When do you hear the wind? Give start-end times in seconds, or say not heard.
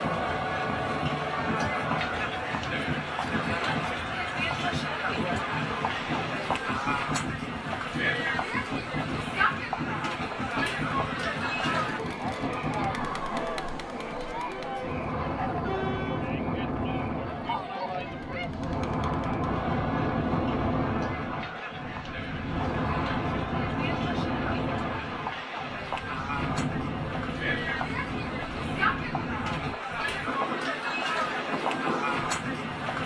0.0-33.0.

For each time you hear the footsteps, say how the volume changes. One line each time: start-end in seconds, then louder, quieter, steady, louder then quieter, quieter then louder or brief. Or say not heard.
not heard.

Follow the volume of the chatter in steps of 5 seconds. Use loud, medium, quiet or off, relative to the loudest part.
loud, loud, loud, medium, medium, loud, loud.